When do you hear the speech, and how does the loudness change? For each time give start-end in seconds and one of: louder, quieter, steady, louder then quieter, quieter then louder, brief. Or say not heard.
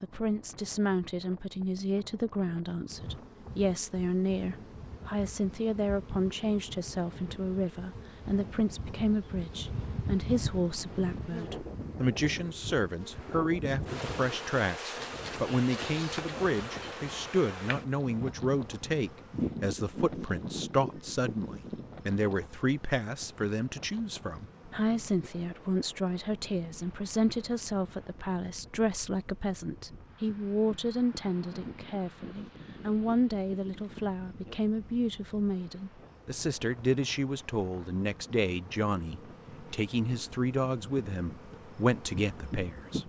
0.0-43.0 steady.